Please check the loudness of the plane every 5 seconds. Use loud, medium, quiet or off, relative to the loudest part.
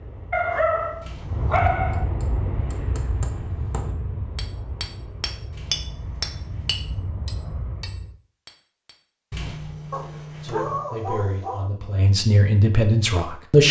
loud, medium, off.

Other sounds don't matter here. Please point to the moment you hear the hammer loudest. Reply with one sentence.
The volume of the hammer peaks at 6 seconds.